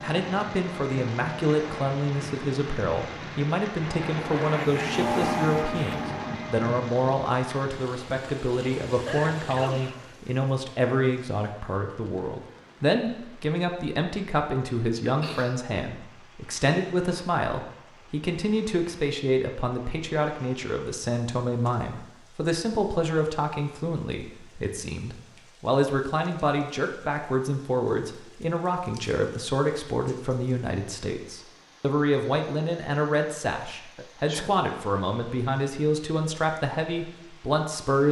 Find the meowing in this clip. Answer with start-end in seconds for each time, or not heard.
not heard.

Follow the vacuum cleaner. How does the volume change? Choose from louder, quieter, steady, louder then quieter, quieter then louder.
louder.